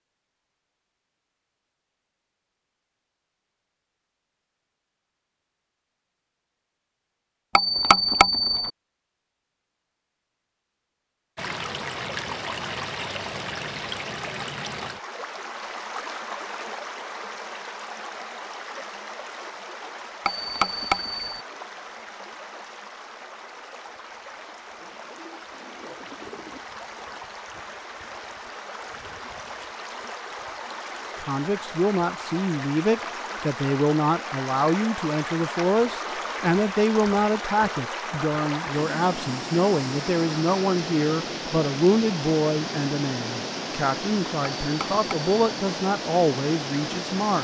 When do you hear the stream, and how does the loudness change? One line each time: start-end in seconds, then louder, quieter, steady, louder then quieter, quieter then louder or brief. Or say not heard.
11.3-47.3 quieter then louder.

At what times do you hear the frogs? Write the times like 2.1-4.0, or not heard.
not heard.